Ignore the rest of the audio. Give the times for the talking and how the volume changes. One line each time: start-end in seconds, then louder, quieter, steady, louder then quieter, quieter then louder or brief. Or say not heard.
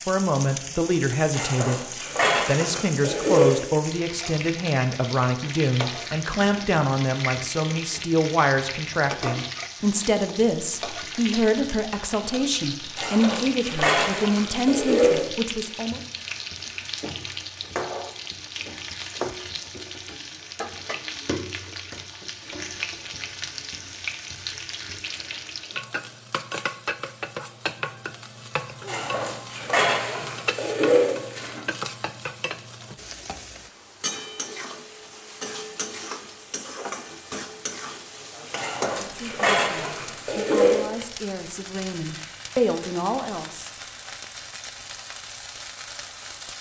0.1-16.0 steady
39.0-43.7 louder.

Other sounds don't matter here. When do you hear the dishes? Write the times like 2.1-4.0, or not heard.
1.3-3.6, 12.9-15.2, 28.9-31.6, 38.5-40.9.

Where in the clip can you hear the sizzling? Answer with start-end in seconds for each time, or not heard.
0.0-46.5.